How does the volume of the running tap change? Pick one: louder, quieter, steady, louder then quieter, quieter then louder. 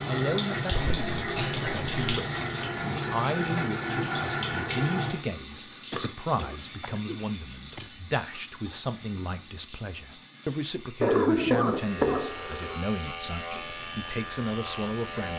quieter.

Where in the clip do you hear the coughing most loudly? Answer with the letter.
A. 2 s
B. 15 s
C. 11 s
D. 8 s
C.